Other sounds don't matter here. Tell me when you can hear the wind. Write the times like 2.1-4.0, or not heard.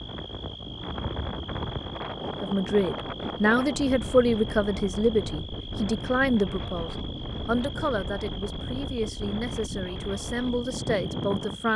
0.0-11.7.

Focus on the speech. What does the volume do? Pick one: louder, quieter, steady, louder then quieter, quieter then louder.
quieter.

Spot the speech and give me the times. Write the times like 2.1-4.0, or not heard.
2.4-11.7.